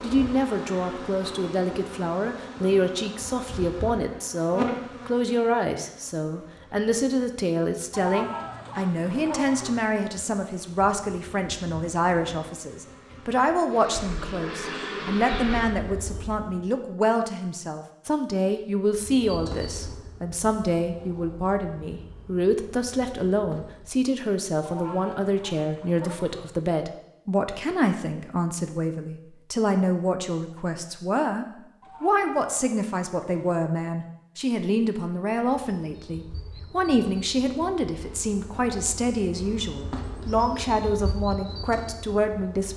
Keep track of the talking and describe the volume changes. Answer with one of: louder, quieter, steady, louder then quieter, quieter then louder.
steady.